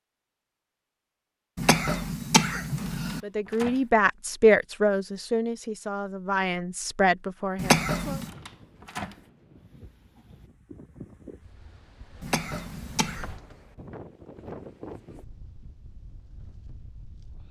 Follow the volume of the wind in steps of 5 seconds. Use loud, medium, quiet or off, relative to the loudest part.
off, medium, loud, medium.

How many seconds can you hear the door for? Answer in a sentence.
You can hear the door for 3 seconds altogether.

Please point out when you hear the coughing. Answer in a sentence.
You can hear the coughing from 1.6 to 3.2 s, from 7.5 to 8.3 s and from 12.2 to 13.3 s.